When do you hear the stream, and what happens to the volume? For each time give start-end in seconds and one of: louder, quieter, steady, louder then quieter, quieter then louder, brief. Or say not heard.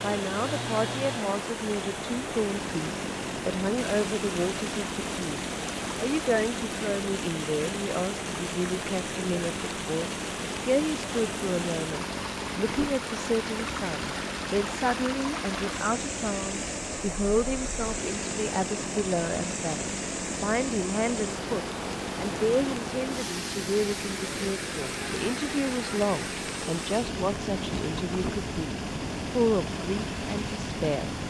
0.0-31.2 steady.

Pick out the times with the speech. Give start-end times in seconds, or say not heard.
0.0-31.2.